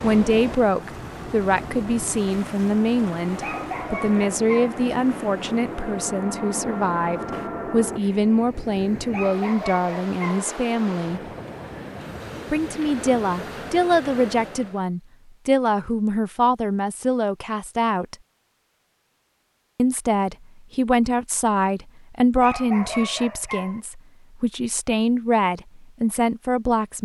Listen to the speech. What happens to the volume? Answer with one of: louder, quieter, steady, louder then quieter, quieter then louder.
steady.